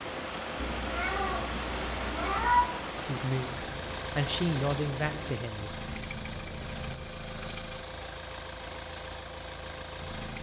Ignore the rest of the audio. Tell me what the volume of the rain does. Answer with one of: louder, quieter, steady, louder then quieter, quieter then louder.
quieter.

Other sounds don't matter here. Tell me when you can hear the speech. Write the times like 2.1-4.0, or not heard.
3.0-5.7.